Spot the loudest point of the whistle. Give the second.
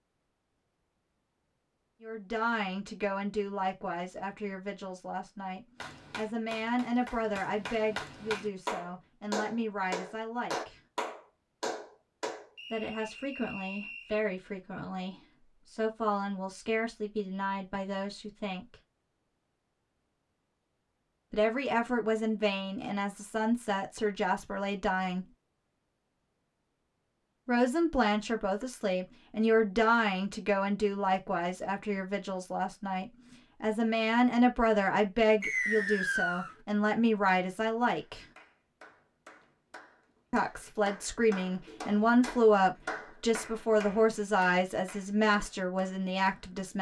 36 s.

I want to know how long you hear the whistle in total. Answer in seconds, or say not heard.
3 s.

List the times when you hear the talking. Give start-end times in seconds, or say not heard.
2.0-10.8, 12.7-18.8, 21.3-25.2, 27.4-38.2, 40.3-46.7.